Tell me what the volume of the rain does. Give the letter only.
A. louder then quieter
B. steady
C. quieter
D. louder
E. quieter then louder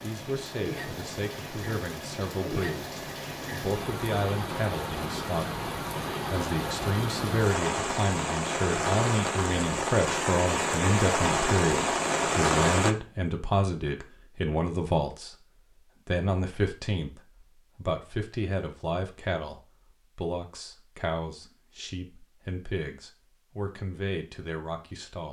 D.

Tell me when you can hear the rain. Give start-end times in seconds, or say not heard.
0.0-12.9.